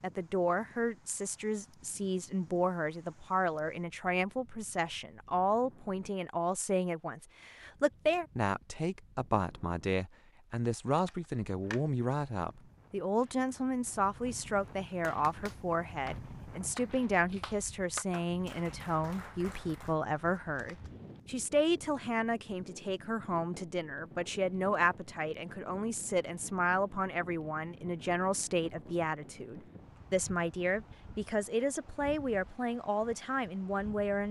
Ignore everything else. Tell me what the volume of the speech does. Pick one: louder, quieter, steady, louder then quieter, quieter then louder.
steady.